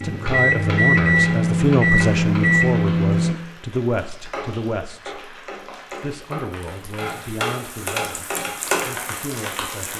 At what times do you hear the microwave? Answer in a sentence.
The microwave can be heard from 0.0 to 3.4 s.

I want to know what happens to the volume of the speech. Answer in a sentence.
The loudness of the speech goes down.